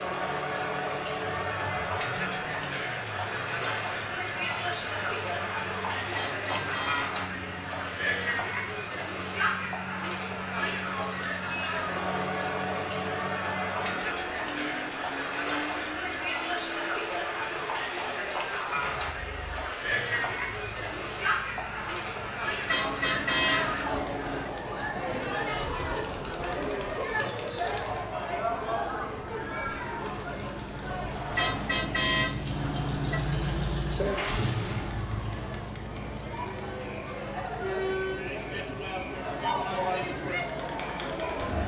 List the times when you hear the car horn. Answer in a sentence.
You can hear the car horn from 6.1 to 8.0 s, from 22.6 to 24.5 s and from 31.4 to 33.2 s.